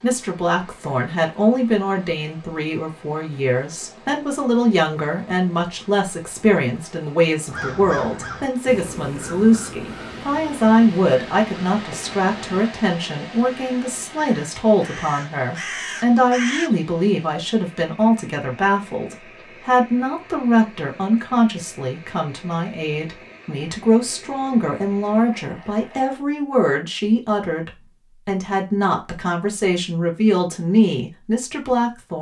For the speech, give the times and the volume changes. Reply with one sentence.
The speech can be heard from 0.0 to 32.1 s, at a steady volume.